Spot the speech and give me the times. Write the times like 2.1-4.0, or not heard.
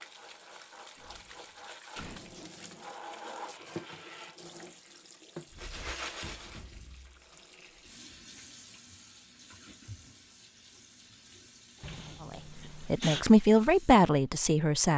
12.3-14.9.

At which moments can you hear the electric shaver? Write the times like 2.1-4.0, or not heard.
not heard.